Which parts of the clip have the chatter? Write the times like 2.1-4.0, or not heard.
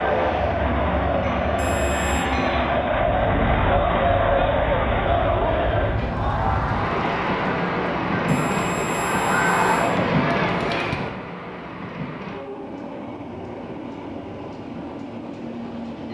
0.0-11.1.